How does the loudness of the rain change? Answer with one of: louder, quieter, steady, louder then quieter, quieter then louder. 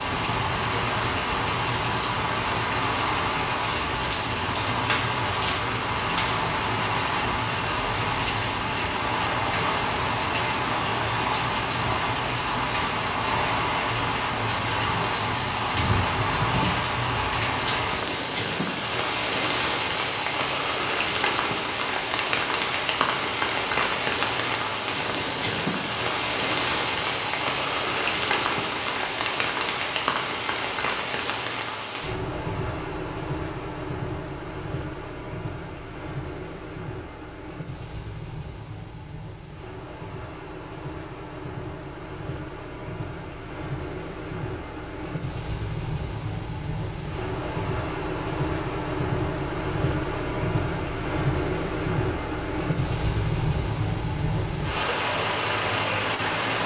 quieter then louder.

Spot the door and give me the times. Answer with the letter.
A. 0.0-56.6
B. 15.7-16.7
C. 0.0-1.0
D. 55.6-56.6
B.